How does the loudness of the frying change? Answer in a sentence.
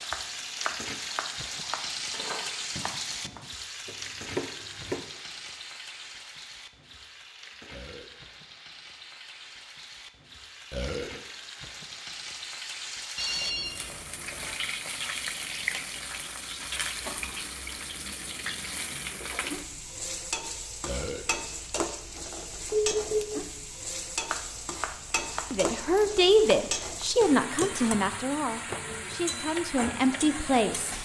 The loudness of the frying goes down, then up.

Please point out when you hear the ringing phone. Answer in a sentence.
You can hear the ringing phone from 2.1 to 3.3 s, from 13.2 to 14.6 s and from 22.7 to 23.4 s.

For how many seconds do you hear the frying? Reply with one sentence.
You can hear the frying for 31 seconds altogether.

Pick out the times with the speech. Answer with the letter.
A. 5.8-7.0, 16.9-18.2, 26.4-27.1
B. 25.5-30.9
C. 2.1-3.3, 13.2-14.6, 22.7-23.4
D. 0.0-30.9
B.